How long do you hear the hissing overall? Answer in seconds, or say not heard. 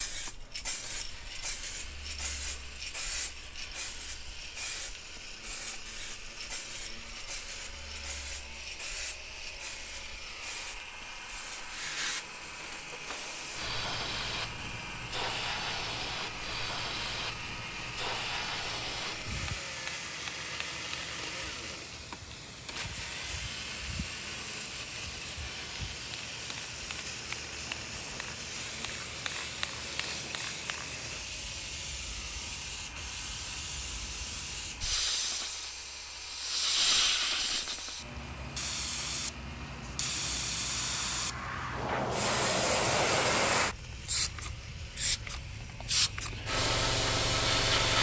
48 s.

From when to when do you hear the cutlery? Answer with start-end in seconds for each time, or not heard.
not heard.